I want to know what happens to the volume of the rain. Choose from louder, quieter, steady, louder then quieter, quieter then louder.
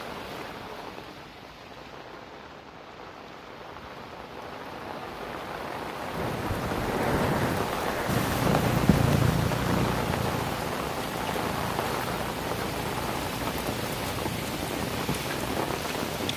louder.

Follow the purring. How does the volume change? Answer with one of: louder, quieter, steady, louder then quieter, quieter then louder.
quieter.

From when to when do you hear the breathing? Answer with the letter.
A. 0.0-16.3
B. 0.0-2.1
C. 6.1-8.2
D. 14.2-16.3
C.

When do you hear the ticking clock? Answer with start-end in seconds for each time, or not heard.
not heard.